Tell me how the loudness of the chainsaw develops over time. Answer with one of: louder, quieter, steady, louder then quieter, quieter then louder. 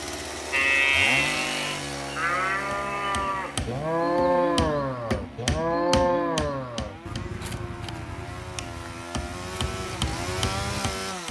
quieter then louder.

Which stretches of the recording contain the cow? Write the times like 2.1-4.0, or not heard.
0.5-10.8.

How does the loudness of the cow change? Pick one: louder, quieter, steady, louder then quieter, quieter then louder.
quieter.